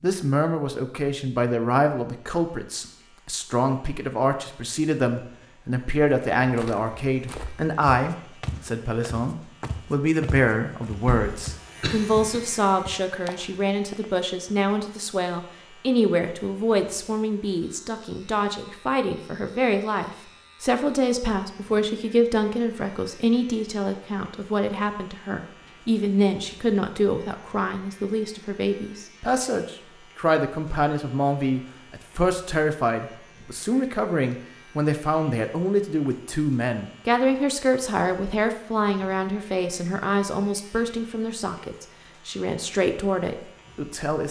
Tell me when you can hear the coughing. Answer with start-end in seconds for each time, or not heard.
11.1-12.4.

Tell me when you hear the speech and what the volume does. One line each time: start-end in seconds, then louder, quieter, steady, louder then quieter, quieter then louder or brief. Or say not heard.
0.0-44.2 steady.